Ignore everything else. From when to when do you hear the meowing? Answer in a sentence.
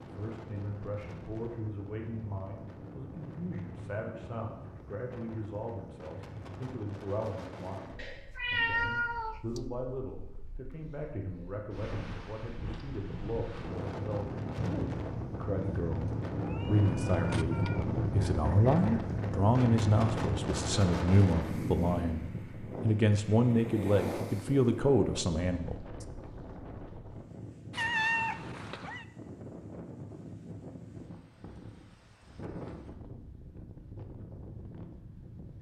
You can hear the meowing from 8.0 to 9.6 s, from 16.4 to 17.9 s and from 27.7 to 29.1 s.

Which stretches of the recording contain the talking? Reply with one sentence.
You can hear the talking from 0.0 to 26.1 s.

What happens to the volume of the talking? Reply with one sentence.
The loudness of the talking goes up.